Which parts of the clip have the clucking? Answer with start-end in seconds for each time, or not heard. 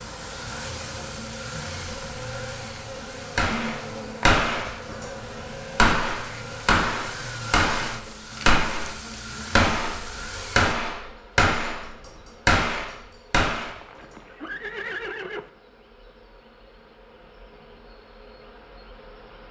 not heard.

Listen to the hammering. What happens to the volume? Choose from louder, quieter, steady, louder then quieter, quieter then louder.
steady.